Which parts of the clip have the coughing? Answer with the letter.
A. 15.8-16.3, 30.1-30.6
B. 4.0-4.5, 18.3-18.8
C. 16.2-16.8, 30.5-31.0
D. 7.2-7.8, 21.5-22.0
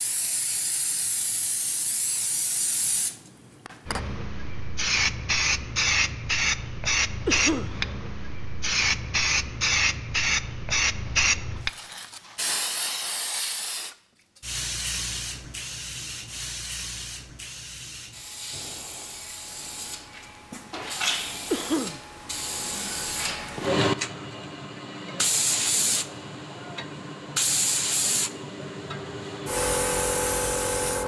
D.